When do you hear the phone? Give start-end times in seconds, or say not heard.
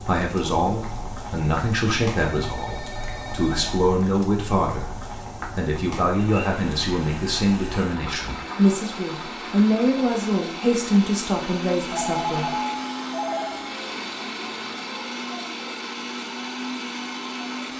2.2-4.0, 11.9-13.7.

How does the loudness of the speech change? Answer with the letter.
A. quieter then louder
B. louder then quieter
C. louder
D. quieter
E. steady
E.